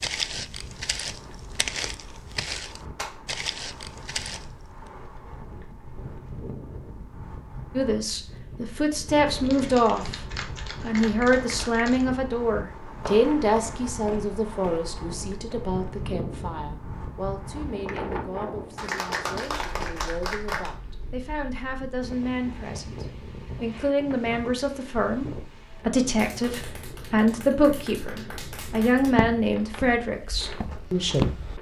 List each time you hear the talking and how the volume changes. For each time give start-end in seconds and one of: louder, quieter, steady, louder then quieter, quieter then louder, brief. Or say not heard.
7.8-10.2 brief
10.8-31.3 quieter then louder.